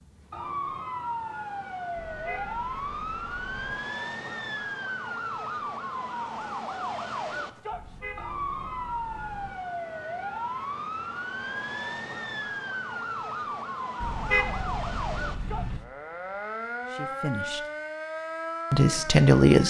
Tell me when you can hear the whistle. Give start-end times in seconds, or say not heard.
not heard.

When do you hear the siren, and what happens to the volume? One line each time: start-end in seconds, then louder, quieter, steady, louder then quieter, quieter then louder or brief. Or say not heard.
0.0-19.6 steady.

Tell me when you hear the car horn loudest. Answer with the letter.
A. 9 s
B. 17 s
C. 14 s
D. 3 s
C.